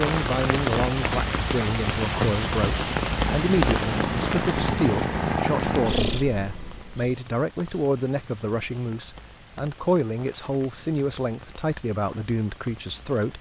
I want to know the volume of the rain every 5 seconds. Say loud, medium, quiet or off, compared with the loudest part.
loud, quiet, quiet.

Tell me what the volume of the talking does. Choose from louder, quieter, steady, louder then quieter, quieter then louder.
steady.